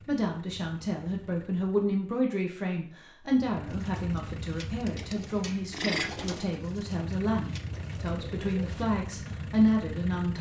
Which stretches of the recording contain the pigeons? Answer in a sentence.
The pigeons can be heard from 3.7 to 8.8 s.